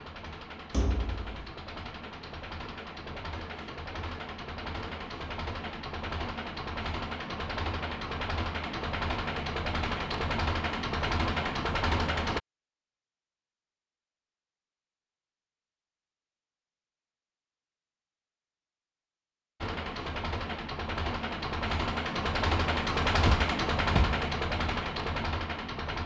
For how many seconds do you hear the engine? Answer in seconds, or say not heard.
19 s.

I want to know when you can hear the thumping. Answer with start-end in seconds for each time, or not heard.
0.7-1.5, 23.2-24.2.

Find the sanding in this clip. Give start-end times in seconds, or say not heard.
not heard.